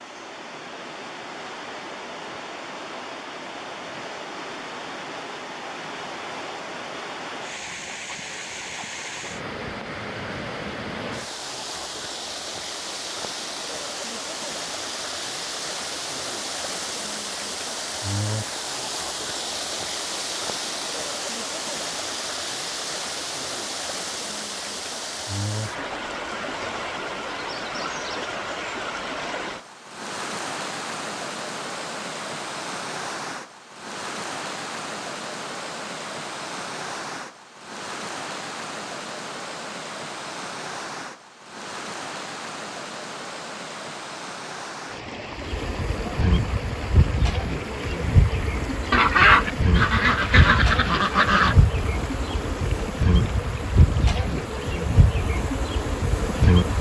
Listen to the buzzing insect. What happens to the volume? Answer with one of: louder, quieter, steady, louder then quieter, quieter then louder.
steady.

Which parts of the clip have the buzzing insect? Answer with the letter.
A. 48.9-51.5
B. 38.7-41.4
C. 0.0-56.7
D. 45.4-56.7
D.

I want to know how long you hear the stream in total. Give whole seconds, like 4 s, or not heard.
57 s.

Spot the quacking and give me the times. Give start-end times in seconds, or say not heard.
48.9-51.5.